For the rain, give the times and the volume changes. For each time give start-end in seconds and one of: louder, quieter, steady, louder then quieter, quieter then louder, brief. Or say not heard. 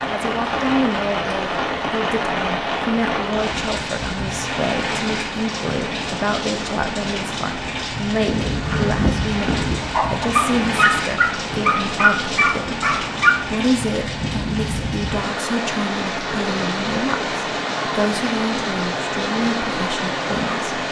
0.0-20.8 steady.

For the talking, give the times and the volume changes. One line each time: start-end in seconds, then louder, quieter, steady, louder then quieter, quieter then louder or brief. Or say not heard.
0.1-20.8 steady.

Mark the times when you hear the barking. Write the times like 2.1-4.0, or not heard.
8.2-13.3.